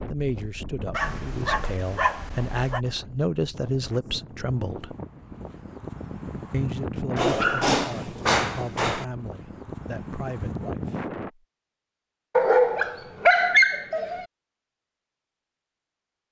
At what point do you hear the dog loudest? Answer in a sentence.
The loudest moment of the dog is at 13 seconds.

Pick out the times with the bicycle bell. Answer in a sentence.
You can't hear the bicycle bell here.